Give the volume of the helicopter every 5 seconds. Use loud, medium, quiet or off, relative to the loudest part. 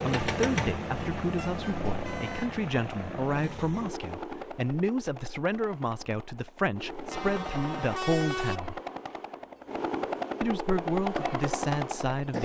loud, medium, loud.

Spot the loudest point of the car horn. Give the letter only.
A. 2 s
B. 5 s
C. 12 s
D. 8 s
D.